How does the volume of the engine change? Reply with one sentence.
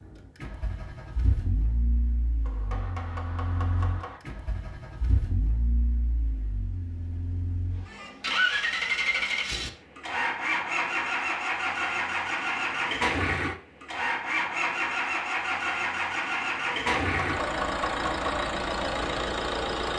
The loudness of the engine goes up.